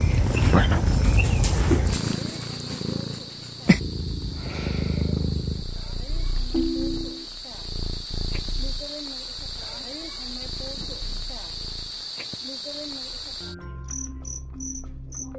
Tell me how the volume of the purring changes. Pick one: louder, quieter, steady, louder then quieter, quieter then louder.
quieter.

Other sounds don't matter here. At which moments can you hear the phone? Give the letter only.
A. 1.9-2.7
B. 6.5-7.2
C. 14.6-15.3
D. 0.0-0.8
B.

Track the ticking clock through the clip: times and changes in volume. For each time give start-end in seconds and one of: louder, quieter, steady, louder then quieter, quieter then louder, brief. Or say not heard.
not heard.